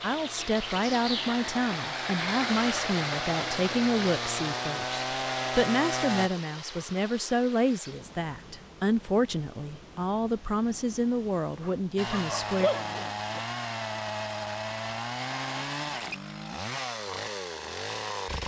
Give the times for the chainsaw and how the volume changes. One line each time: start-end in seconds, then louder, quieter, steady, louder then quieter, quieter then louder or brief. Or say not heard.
0.0-6.3 louder
11.9-18.4 steady.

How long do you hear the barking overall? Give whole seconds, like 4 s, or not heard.
2 s.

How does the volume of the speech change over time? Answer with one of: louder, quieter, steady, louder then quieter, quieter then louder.
steady.